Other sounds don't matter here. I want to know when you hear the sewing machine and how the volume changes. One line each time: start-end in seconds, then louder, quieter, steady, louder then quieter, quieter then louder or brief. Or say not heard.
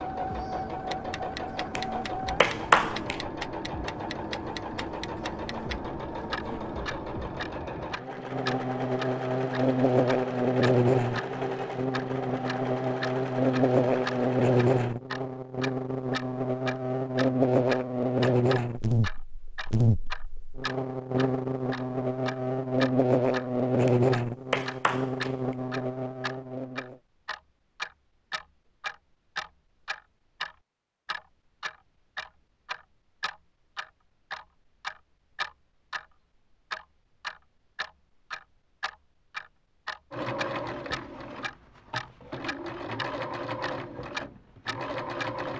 0.0-14.9 steady
40.1-45.5 quieter then louder.